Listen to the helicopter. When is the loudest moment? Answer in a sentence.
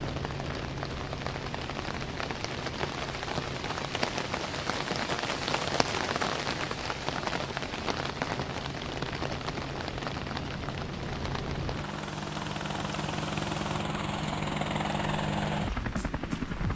The loudest moment of the helicopter is at 15 seconds.